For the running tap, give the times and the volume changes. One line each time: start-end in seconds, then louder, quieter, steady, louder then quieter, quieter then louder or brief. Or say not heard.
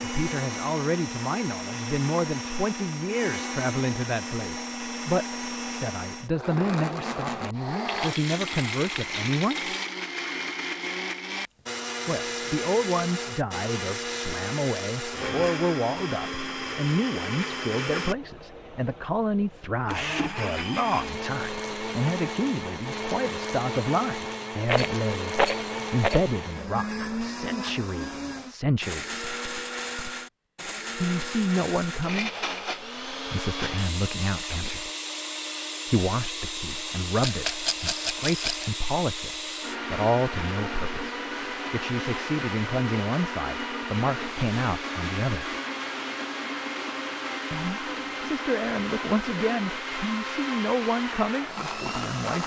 not heard.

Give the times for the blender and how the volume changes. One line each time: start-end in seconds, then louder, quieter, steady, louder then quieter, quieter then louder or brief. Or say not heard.
0.0-52.4 steady.